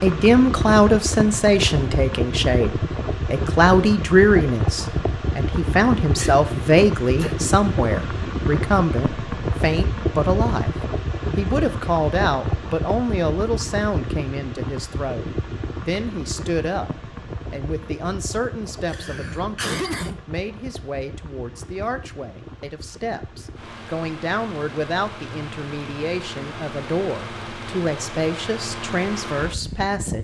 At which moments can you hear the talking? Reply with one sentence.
You can hear the talking from 0.0 to 10.7 s and from 11.3 to 30.1 s.